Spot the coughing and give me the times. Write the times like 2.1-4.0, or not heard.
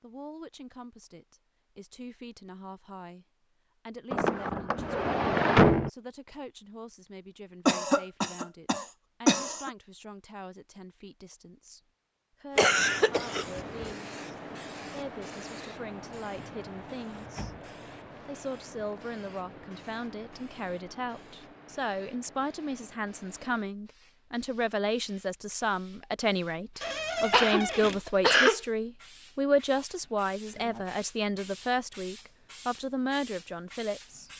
7.7-9.7, 12.6-13.9, 27.3-28.6.